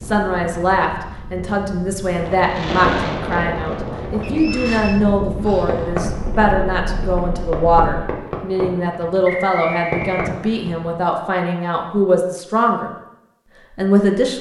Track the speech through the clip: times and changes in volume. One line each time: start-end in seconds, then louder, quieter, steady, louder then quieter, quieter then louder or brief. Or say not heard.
0.0-12.9 steady
13.8-14.3 brief.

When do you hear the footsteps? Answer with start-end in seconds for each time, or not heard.
not heard.